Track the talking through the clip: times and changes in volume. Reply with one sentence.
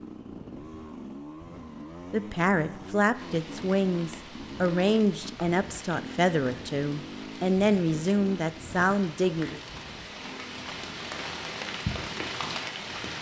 The talking can be heard from 2.1 to 9.6 s, at a steady volume.